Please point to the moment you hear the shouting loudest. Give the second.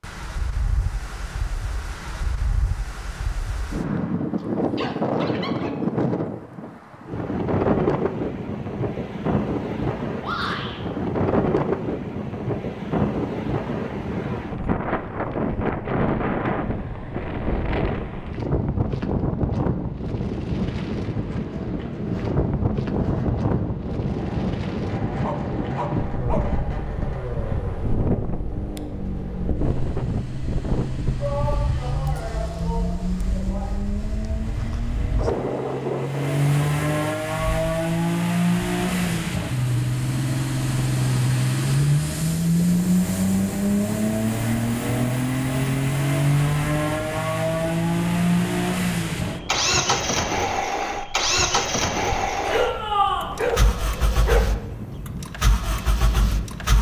53 s.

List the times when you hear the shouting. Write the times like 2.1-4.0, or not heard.
10.2-10.8, 31.1-33.8, 52.4-53.4.